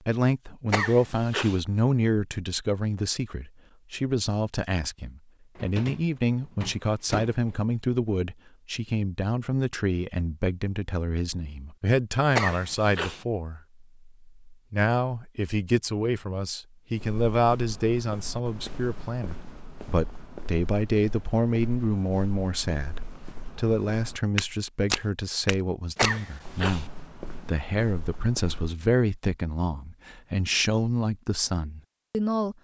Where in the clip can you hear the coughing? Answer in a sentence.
The coughing can be heard from 0.7 to 1.6 s, from 12.3 to 13.2 s and from 25.9 to 26.9 s.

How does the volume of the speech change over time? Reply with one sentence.
The loudness of the speech stays about the same.